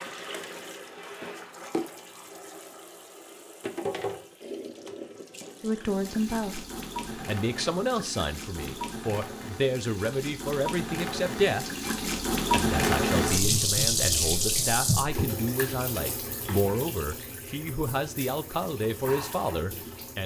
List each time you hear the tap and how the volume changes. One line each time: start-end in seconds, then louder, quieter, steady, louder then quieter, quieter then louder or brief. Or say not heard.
0.0-20.2 louder then quieter.